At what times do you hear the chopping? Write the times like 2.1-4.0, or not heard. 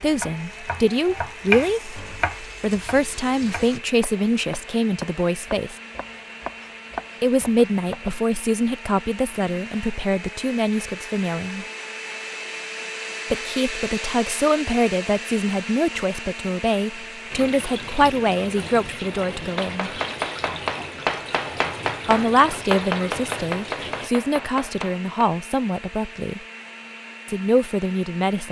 0.0-8.2, 19.5-25.2.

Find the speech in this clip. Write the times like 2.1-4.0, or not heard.
0.0-5.8, 7.2-11.7, 13.3-20.0, 22.1-26.4, 27.2-28.4.